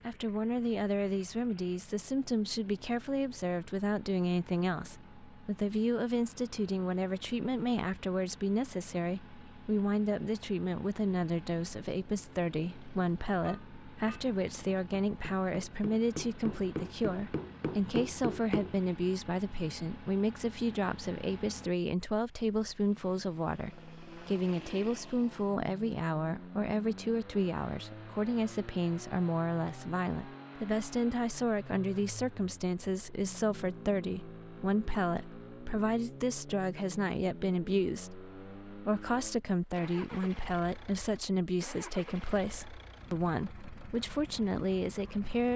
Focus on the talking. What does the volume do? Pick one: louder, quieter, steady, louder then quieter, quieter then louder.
steady.